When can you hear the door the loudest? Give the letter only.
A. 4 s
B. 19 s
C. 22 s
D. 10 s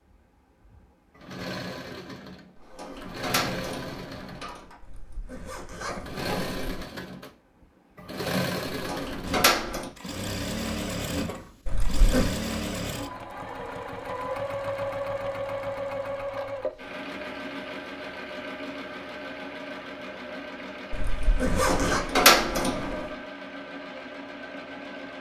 C.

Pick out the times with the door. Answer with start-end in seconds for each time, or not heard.
2.5-4.8, 8.8-9.9, 21.5-23.1.